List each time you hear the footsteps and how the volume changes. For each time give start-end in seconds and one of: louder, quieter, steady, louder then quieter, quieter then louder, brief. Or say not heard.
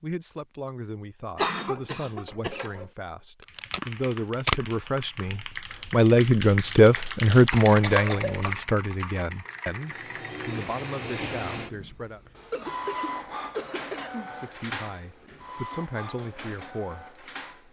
not heard.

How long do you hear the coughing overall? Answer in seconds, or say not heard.
4 s.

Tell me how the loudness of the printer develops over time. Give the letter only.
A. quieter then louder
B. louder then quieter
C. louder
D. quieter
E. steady
D.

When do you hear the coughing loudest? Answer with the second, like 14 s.
2 s.